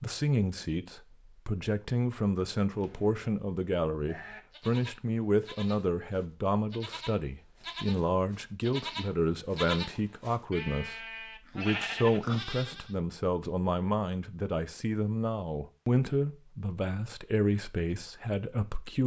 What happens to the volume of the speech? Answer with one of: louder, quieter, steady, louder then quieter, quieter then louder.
steady.